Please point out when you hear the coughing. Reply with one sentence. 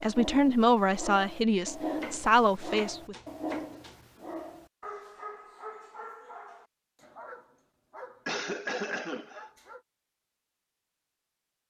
The coughing can be heard from 8.2 to 9.5 s.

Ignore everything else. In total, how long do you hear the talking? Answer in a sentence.
You can hear the talking for 3 seconds altogether.